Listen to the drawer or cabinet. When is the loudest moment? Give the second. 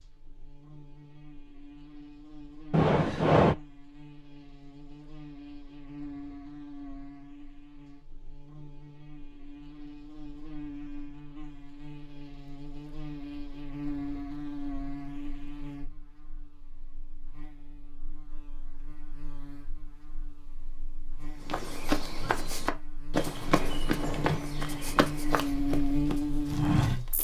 3 s.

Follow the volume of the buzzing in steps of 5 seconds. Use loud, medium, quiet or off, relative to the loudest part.
quiet, quiet, medium, quiet, quiet, loud.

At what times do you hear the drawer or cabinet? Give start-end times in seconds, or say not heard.
2.7-3.5, 23.4-24.4.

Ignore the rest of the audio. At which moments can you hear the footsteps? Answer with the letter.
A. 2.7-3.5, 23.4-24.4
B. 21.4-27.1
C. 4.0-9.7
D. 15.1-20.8
B.